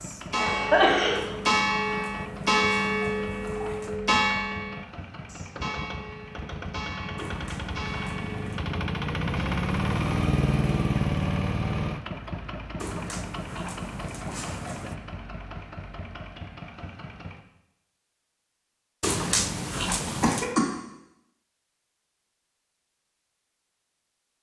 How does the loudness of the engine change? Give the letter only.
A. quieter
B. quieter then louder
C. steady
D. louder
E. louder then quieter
E.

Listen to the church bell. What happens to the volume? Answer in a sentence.
The loudness of the church bell goes down.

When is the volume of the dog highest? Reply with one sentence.
The volume of the dog peaks at 19 seconds.